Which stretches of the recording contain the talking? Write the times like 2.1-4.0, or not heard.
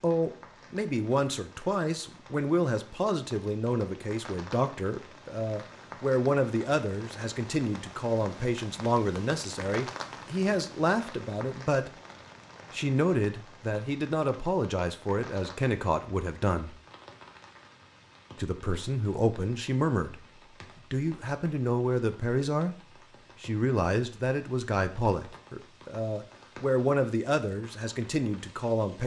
0.0-11.9, 12.7-16.8, 18.4-20.1, 20.9-22.8, 23.4-29.0.